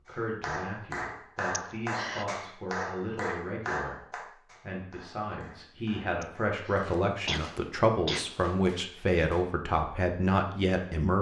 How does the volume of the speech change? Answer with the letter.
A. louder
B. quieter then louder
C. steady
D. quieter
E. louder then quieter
A.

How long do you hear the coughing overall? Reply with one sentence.
You can hear the coughing for 3 seconds altogether.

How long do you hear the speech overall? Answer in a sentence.
You can hear the speech for 11 seconds altogether.